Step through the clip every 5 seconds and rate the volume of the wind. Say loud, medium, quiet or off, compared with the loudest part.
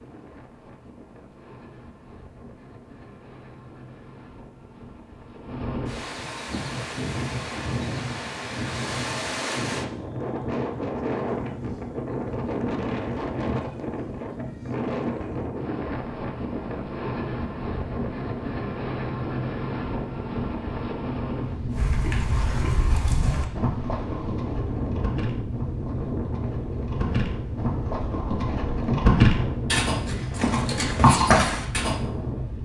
quiet, loud, loud, loud, loud, loud, loud.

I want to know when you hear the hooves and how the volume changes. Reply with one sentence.
The hooves can be heard from 21.7 to 32.0 s, getting quieter then louder.